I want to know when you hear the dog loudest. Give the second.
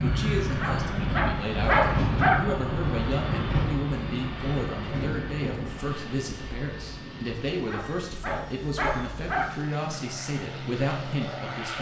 2 s.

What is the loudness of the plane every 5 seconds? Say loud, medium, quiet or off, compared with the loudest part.
loud, medium, medium.